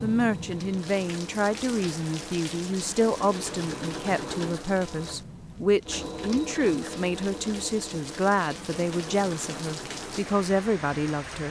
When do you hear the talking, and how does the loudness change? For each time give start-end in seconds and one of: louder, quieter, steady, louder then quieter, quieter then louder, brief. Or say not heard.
0.0-11.4 steady.